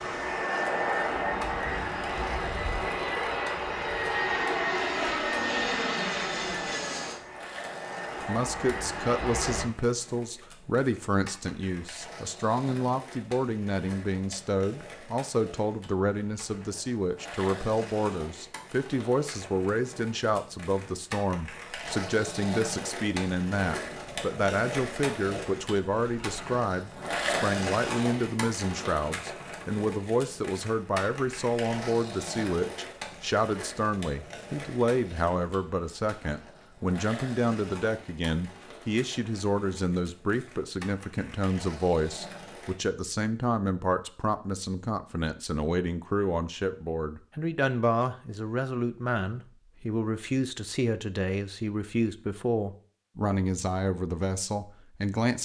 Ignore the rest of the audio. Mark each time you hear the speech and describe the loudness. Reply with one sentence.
The speech can be heard from 8.2 to 55.4 s, at a steady volume.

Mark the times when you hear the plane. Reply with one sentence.
You can hear the plane from 0.0 to 9.7 s.